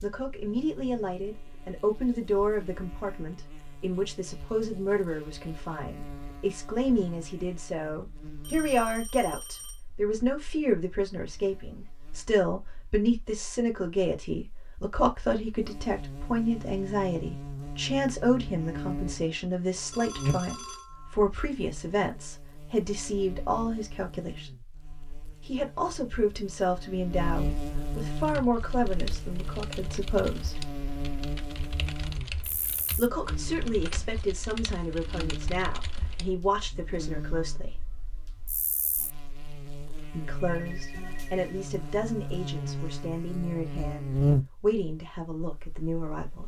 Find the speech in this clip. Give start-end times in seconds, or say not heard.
0.0-24.5, 25.4-30.6, 33.0-37.8, 40.1-46.4.